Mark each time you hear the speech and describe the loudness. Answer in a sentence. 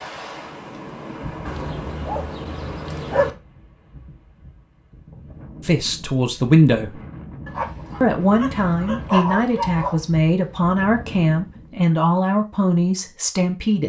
You can hear the speech briefly from 5.6 to 7.0 s; and from 8.0 to 13.8 s, at a steady volume.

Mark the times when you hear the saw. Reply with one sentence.
The saw can't be heard in this clip.